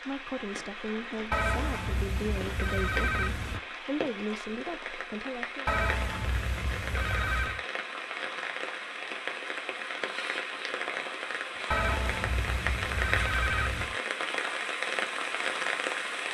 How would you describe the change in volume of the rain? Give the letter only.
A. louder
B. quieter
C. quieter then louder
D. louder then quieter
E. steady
A.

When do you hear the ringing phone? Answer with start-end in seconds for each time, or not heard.
1.3-3.6, 5.7-7.6, 11.7-13.9.